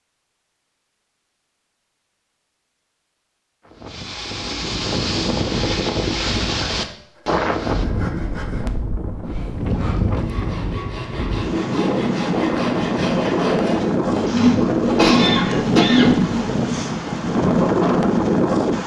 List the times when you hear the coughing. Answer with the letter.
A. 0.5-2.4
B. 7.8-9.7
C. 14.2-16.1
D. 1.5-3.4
C.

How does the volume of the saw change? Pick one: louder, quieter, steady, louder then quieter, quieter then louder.
louder.